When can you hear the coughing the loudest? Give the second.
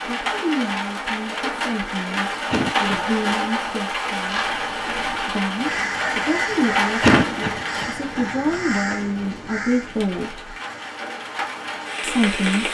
7 s.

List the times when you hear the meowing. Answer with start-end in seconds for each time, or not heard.
not heard.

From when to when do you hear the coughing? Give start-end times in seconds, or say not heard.
2.5-3.7, 7.0-8.2.